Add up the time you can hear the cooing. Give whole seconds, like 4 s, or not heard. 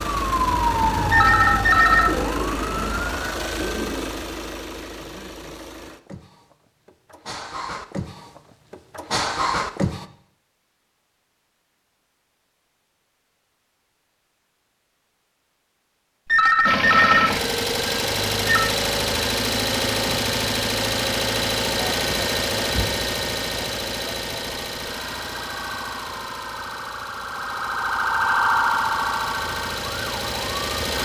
2 s.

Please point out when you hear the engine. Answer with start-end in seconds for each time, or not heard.
0.0-10.1, 16.6-30.9.